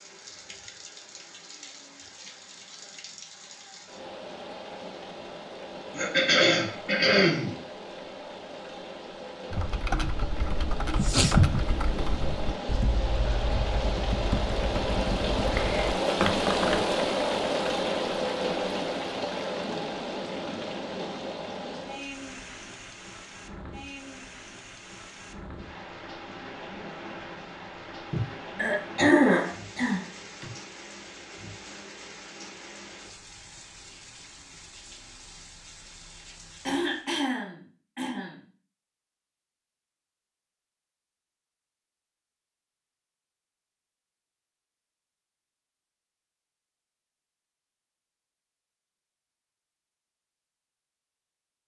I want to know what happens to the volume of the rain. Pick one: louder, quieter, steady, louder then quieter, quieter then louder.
louder then quieter.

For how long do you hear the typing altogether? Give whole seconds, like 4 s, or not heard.
7 s.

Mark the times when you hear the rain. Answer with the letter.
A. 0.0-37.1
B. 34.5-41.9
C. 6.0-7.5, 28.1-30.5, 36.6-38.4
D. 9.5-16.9
A.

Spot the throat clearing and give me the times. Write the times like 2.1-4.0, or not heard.
6.0-7.5, 28.1-30.5, 36.6-38.4.